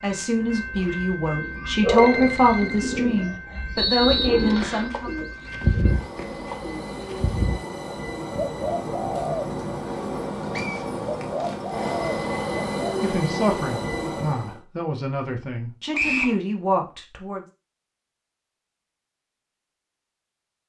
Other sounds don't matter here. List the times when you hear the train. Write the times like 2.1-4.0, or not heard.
0.0-14.6.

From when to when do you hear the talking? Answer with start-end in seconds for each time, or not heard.
0.0-5.1, 13.0-17.4.